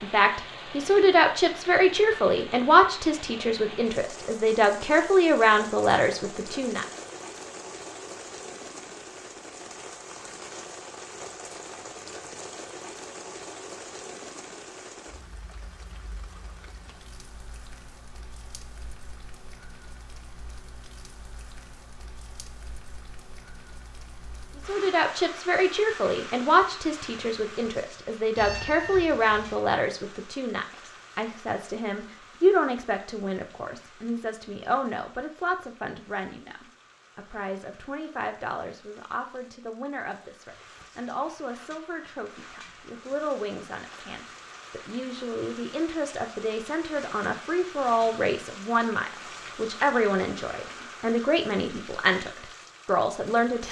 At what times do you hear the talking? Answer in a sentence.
The talking can be heard from 0.0 to 6.8 s and from 24.6 to 53.6 s.